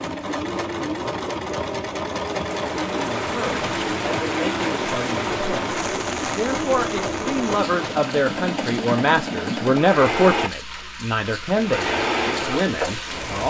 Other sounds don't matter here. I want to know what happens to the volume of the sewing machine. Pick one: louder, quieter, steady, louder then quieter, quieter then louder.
steady.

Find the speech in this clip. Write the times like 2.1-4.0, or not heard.
2.9-13.4.